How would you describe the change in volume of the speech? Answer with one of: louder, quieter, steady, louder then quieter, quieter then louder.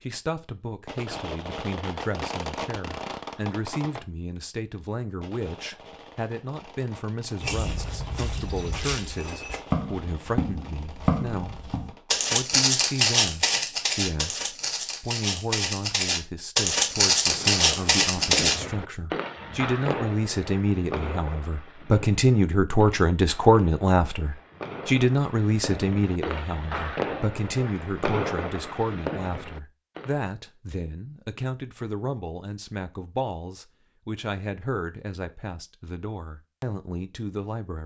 louder then quieter.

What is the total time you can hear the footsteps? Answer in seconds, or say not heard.
11 s.